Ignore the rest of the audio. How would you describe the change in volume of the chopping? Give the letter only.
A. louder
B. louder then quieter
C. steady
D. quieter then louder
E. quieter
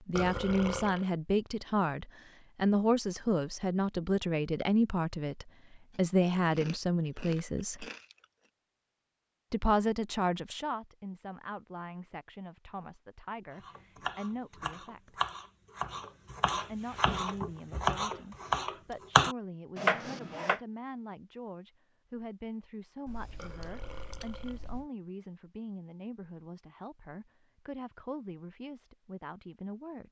A.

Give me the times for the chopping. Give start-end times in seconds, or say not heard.
13.5-20.6.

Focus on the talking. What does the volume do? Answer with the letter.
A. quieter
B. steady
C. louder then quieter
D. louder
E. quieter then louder
A.